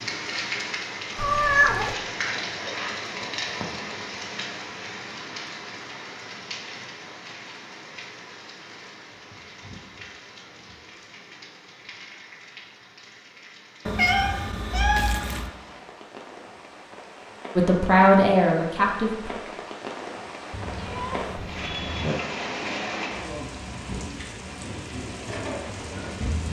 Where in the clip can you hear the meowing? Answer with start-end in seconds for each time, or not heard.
1.1-1.9, 13.8-15.5, 20.5-22.1.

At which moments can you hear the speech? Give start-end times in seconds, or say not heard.
17.6-19.3.